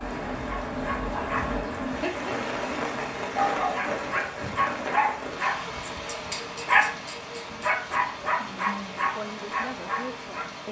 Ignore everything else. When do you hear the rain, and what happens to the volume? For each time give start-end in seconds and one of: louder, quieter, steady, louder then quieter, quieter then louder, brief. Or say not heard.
0.0-10.6 quieter.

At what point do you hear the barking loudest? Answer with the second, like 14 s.
7 s.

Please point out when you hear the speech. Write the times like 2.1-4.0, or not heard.
9.2-10.6.